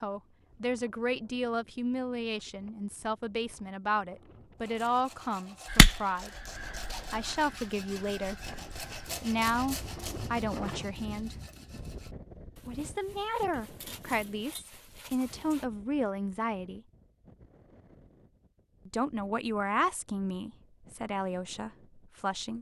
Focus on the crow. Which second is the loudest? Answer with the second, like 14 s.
6 s.